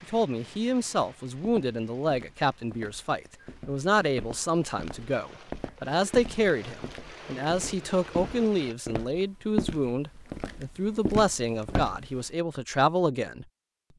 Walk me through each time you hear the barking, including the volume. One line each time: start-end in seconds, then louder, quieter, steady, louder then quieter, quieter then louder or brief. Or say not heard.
not heard.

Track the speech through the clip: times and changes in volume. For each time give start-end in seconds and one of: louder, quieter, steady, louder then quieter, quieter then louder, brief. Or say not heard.
0.0-13.4 steady.